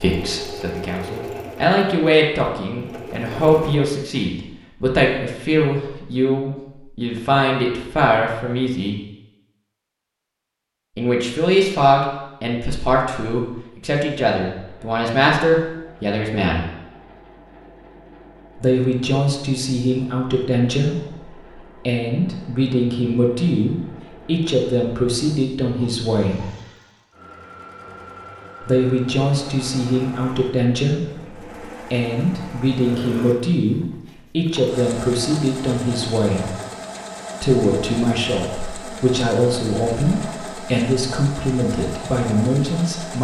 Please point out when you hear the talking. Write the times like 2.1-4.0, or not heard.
0.0-8.9, 10.9-16.6, 18.6-26.4, 28.6-36.5, 37.4-43.2.